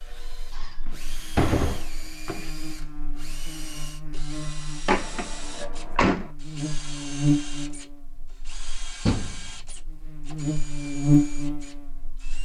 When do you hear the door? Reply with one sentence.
The door can be heard from 0.6 to 2.5 s, from 4.8 to 6.3 s and from 9.1 to 9.6 s.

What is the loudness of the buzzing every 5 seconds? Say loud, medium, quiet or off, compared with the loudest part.
quiet, medium, loud.